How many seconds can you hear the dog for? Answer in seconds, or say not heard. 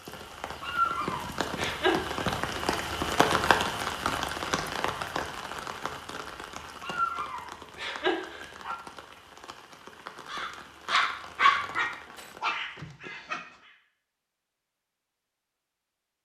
6 s.